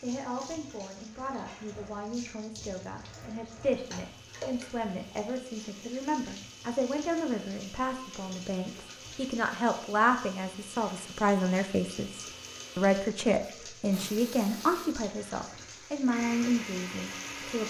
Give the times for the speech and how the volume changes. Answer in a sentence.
You can hear the speech from 0.0 to 17.6 s, getting louder.